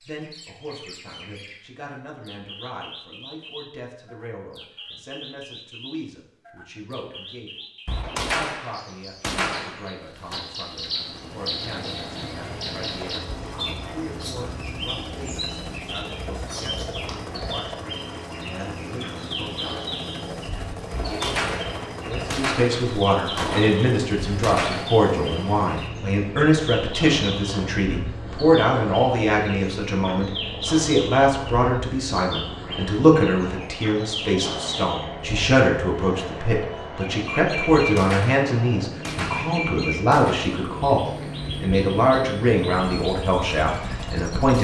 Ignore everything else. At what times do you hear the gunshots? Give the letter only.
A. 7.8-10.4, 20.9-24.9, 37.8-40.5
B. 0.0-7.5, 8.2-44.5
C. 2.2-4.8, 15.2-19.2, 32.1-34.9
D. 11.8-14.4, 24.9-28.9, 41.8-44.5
A.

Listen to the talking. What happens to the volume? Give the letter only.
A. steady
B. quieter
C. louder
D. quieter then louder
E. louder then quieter
C.